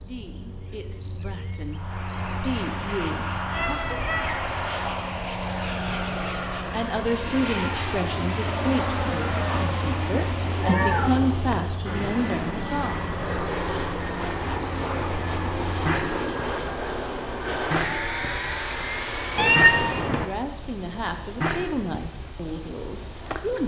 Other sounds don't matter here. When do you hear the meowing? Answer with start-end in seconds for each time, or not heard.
3.5-4.4, 9.3-11.6, 19.4-20.2.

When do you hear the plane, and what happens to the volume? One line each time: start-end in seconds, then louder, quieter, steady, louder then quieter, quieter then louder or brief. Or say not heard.
1.7-20.1 steady.